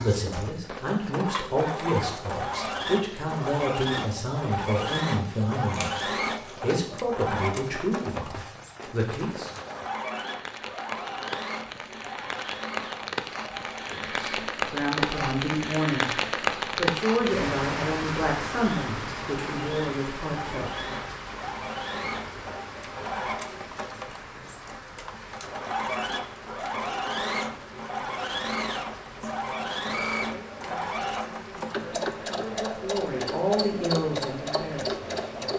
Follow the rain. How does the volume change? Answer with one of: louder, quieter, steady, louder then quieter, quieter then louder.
louder then quieter.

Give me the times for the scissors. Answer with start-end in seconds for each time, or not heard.
5.7-6.5.